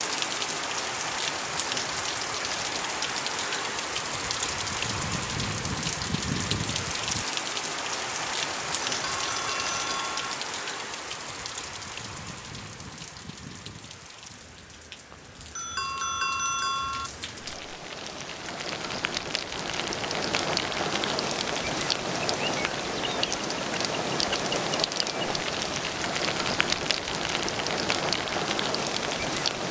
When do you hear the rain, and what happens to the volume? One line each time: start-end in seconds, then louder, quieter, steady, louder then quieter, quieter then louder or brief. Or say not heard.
0.0-29.6 quieter then louder.